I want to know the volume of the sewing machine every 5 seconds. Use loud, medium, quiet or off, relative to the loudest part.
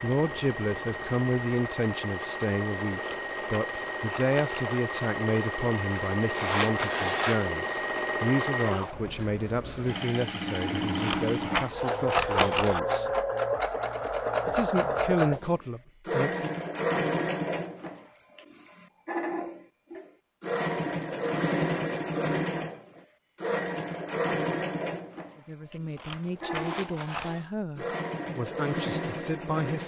medium, loud, loud, loud, loud, medium.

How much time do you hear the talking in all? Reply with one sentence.
The talking can be heard for 20 seconds in total.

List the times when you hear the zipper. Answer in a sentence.
You can hear the zipper from 5.9 to 7.4 s and from 26.1 to 27.4 s.